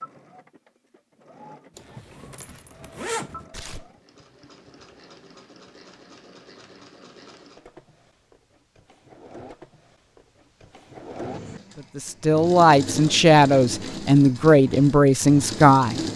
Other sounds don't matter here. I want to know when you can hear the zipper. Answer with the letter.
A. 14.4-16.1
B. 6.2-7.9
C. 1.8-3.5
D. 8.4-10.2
C.